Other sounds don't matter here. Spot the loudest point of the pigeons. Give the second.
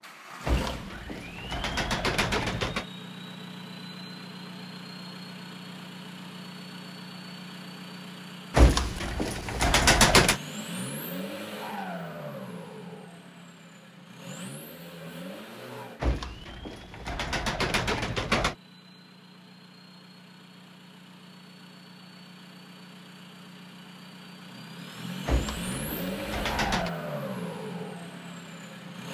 10 s.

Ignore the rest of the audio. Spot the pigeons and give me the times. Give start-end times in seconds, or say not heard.
0.5-2.9, 8.6-10.4, 16.0-18.6, 25.2-26.9.